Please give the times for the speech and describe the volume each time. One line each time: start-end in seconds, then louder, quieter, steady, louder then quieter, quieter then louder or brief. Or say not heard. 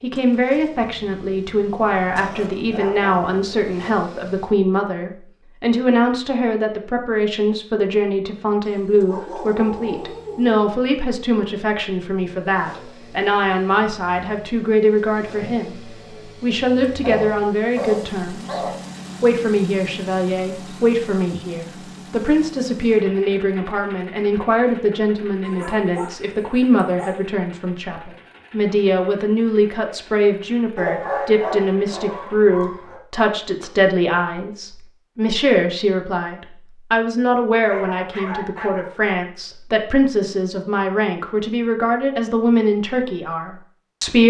0.0-44.2 steady.